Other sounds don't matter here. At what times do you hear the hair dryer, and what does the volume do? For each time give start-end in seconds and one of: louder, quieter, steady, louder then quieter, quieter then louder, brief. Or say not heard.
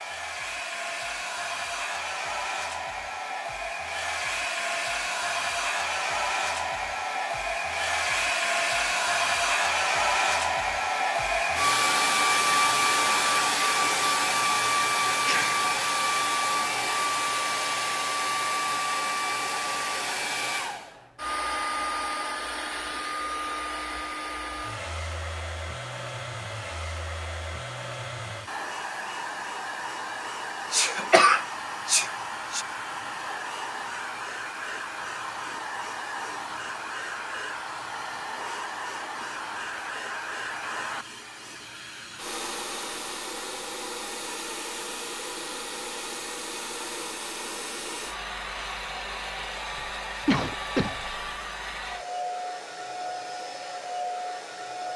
0.0-54.9 quieter.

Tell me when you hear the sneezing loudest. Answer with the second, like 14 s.
31 s.